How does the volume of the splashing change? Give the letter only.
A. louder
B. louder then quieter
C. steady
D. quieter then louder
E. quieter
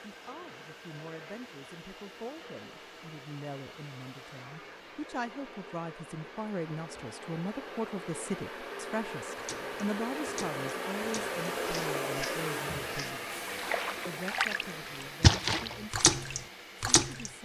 A.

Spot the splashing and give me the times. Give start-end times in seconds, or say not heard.
9.3-17.3.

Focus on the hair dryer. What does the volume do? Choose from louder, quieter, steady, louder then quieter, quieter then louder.
louder then quieter.